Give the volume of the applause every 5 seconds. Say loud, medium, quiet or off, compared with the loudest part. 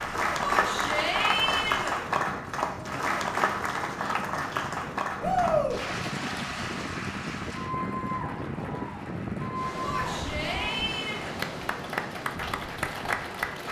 loud, medium, medium.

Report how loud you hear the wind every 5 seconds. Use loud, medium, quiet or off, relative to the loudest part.
medium, loud, loud.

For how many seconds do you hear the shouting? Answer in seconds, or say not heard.
4 s.